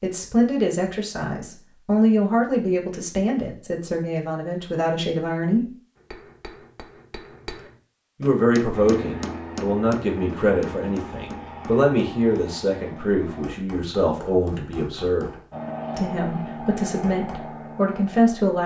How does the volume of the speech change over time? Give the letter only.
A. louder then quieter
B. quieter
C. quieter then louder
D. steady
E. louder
D.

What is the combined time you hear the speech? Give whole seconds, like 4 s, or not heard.
16 s.